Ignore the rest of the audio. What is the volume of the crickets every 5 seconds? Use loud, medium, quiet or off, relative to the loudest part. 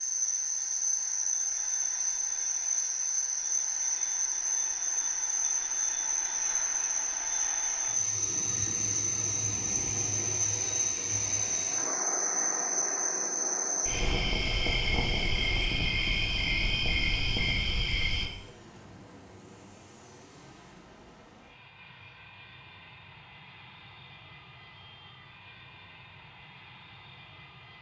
loud, loud, loud, loud, off, off.